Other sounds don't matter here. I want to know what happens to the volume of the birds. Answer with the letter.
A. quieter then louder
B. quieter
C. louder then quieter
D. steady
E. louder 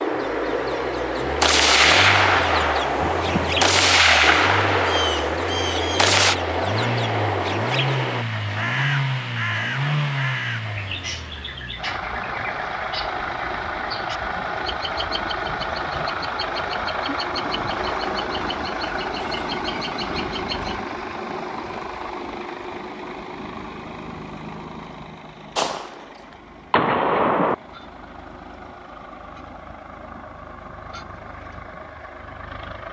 B.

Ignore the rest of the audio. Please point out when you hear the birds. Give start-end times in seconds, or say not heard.
0.0-20.8.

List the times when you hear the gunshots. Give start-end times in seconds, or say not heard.
1.4-6.3, 25.6-26.1, 26.7-27.6.